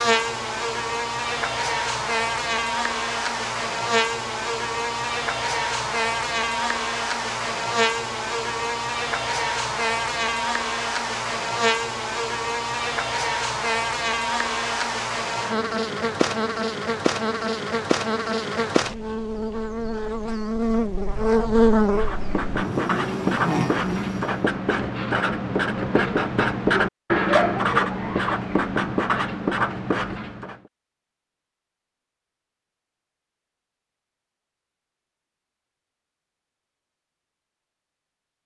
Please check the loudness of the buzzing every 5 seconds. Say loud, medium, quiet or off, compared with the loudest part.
loud, loud, loud, loud, loud, off, off, off.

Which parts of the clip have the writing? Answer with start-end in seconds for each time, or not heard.
21.8-30.6.